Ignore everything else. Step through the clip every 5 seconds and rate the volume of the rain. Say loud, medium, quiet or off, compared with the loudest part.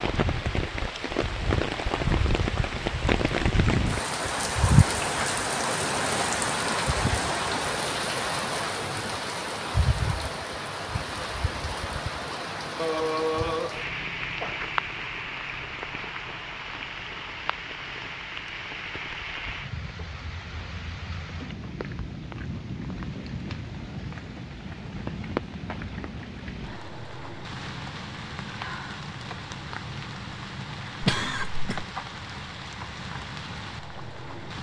loud, loud, medium, medium, medium, medium, medium.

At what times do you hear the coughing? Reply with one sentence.
The coughing can be heard from 12.8 to 14.6 s and from 31.0 to 31.9 s.